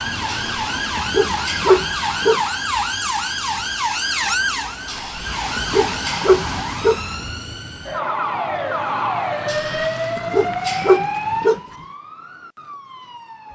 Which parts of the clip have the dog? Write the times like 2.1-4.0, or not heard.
0.2-2.4, 4.8-7.0, 9.4-11.6.